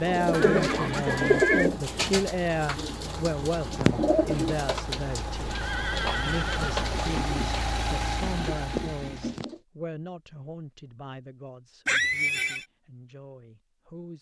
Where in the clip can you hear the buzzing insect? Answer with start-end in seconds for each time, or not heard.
not heard.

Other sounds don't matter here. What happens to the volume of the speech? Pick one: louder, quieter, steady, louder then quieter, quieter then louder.
quieter.